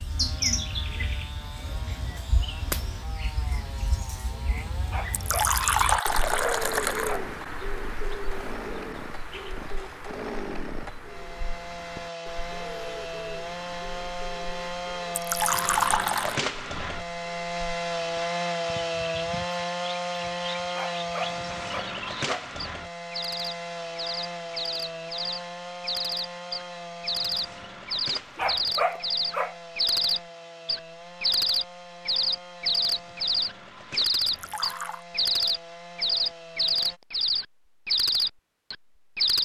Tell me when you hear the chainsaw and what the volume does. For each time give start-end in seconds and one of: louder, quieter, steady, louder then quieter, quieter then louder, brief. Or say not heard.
0.0-37.0 louder then quieter.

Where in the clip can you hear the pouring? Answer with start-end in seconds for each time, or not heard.
5.1-7.2, 15.2-16.4, 34.2-35.0.